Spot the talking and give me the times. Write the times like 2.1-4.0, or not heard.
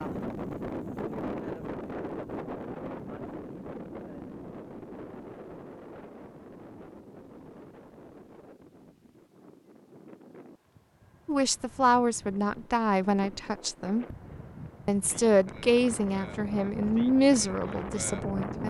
11.2-14.1, 14.8-18.6.